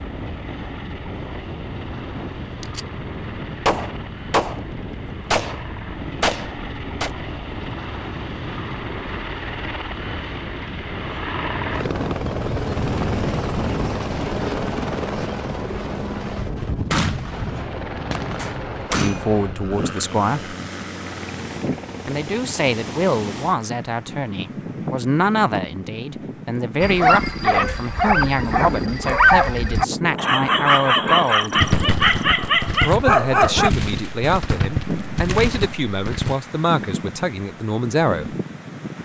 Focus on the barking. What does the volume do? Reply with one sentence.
The loudness of the barking stays about the same.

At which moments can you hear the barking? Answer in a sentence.
The barking can be heard from 26.8 to 33.7 s.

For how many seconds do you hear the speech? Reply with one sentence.
The speech can be heard for 17 seconds in total.